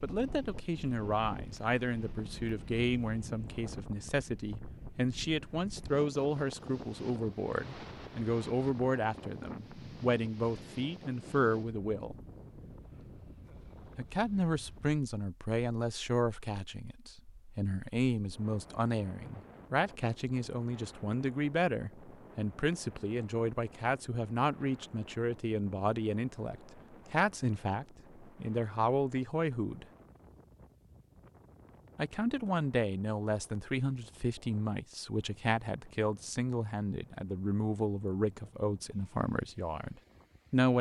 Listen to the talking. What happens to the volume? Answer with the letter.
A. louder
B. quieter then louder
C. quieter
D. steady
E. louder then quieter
D.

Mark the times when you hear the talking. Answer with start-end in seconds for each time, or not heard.
0.0-12.2, 13.9-29.9, 31.9-40.7.